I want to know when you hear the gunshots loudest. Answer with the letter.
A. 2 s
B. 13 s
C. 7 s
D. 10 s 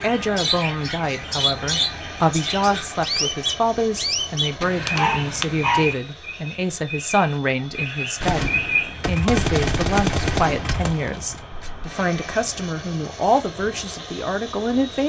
D.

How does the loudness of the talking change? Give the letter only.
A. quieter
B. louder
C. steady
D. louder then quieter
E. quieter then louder
C.